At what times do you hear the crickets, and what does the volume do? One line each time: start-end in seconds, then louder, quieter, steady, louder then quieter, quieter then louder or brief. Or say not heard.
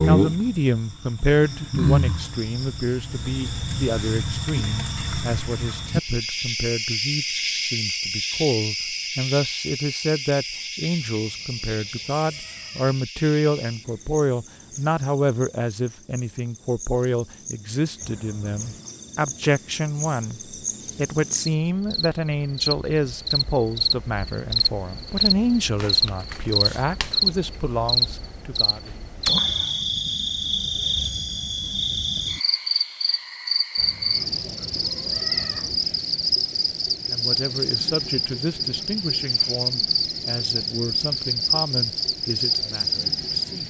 0.0-43.6 quieter then louder.